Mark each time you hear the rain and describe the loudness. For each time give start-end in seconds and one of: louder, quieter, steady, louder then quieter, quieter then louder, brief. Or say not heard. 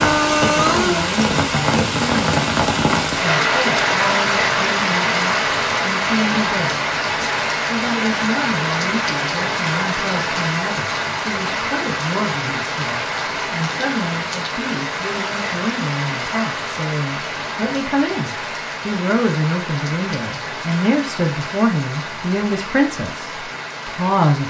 0.0-24.4 quieter.